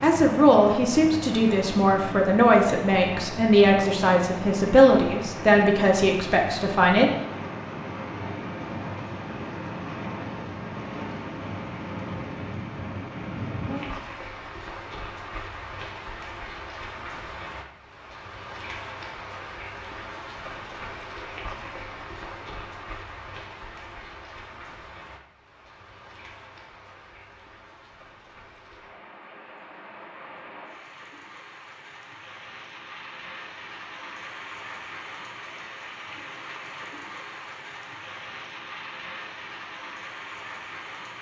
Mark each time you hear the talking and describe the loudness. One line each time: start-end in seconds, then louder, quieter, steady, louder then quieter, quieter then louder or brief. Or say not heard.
0.0-7.1 steady.